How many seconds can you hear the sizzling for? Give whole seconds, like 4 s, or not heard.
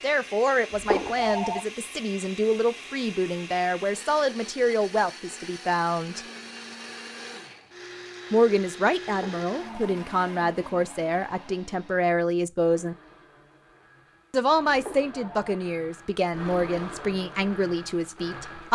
not heard.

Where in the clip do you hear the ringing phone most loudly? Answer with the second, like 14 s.
1 s.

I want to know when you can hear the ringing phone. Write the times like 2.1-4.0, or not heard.
0.8-1.6, 9.1-9.9, 14.7-15.4.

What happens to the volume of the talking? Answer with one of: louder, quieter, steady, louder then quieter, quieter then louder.
steady.